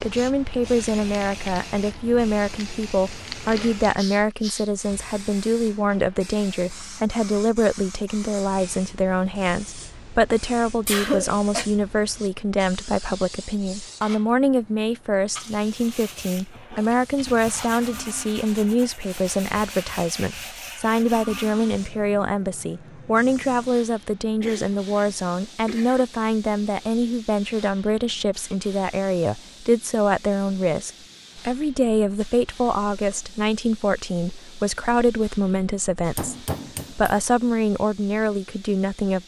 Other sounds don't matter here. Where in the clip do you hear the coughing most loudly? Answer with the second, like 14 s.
11 s.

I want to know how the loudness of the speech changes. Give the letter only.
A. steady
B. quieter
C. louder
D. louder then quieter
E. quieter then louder
A.